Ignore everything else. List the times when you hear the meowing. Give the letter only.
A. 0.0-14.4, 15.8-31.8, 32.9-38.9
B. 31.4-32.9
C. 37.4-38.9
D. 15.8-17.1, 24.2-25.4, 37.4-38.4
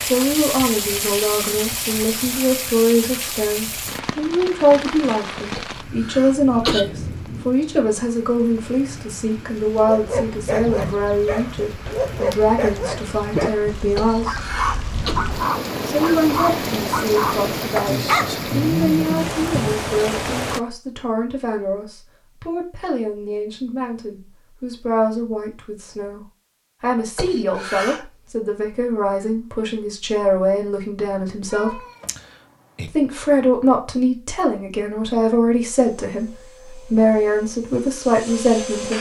B.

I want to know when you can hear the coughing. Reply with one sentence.
You can hear the coughing from 5.5 to 6.8 s, from 13.9 to 15.2 s and from 27.1 to 28.1 s.